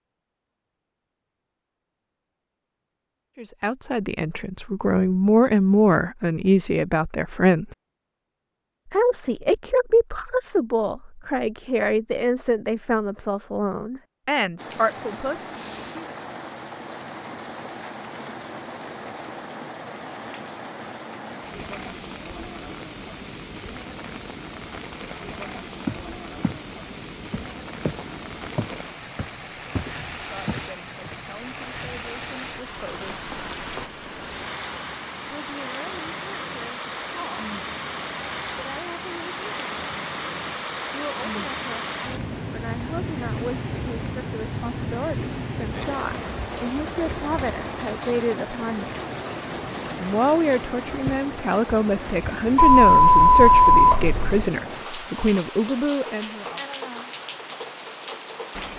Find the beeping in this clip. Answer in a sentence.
The beeping can be heard from 52.5 to 54.5 s.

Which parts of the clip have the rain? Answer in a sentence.
You can hear the rain from 14.6 to 58.7 s.